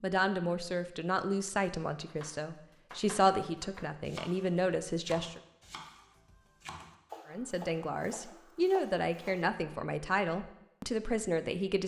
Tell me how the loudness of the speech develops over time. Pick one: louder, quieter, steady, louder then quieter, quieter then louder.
steady.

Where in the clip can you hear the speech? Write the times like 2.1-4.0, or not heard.
0.0-5.4, 7.2-11.8.